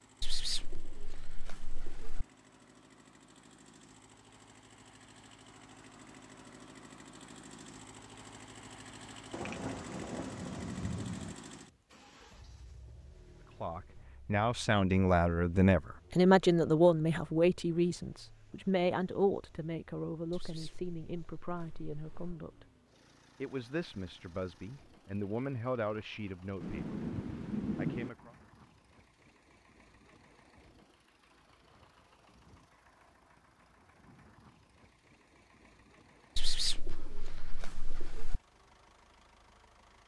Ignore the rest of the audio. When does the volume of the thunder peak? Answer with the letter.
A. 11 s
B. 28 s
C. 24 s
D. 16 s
B.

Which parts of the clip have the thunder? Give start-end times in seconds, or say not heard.
9.3-11.3, 26.6-28.1.